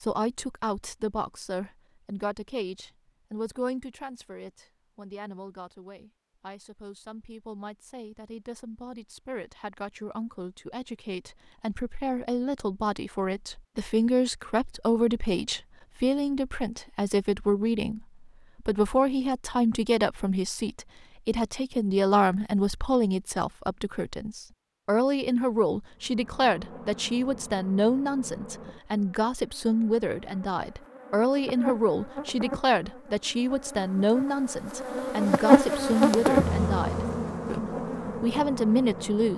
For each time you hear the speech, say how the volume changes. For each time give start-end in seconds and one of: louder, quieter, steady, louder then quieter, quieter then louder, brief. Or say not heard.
0.0-39.3 louder.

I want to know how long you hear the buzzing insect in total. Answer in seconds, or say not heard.
13 s.